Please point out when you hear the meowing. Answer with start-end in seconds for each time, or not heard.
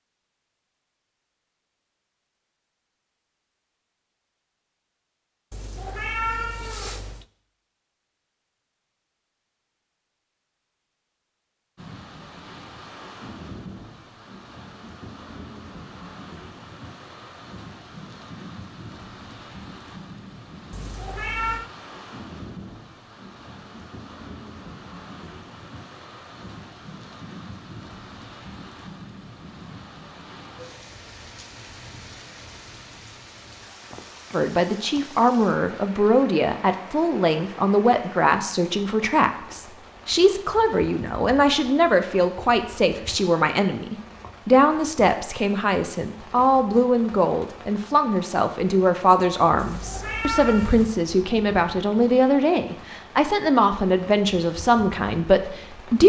5.5-7.2, 20.7-21.7, 49.5-50.9.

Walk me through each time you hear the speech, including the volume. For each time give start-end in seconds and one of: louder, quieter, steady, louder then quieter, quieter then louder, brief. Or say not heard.
34.3-56.0 steady.